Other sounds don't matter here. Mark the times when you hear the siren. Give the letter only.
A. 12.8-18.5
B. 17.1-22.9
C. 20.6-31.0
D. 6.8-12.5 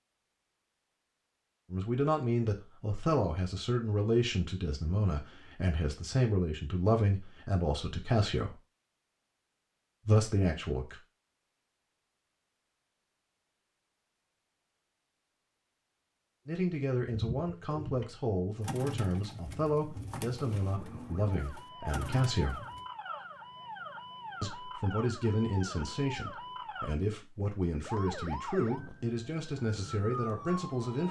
C.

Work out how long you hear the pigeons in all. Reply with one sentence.
You can hear the pigeons for 6 seconds altogether.